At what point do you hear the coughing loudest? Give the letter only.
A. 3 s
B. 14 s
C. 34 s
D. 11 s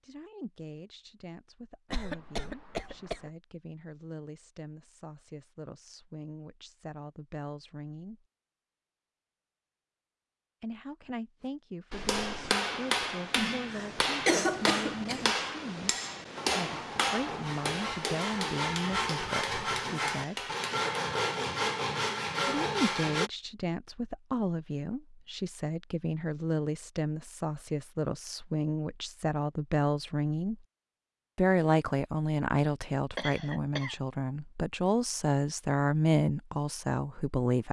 B.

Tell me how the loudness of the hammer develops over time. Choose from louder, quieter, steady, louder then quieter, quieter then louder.
quieter.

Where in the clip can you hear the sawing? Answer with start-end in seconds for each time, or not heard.
16.4-23.3.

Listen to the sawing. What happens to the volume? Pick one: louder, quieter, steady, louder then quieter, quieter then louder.
louder.